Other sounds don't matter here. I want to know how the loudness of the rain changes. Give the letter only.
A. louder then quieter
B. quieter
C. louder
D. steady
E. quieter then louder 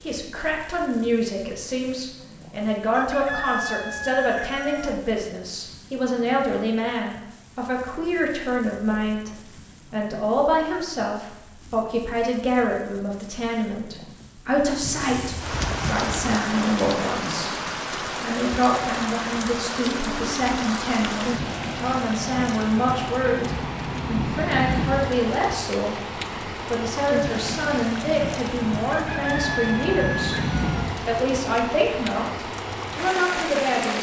C.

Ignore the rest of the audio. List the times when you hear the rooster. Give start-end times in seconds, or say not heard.
2.9-5.0, 28.9-30.9.